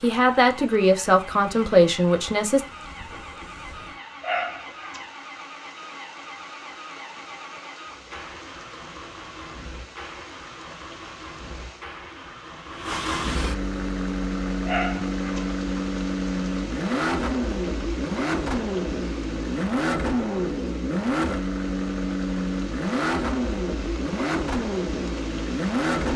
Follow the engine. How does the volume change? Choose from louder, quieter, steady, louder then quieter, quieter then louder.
louder.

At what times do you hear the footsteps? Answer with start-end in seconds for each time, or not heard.
not heard.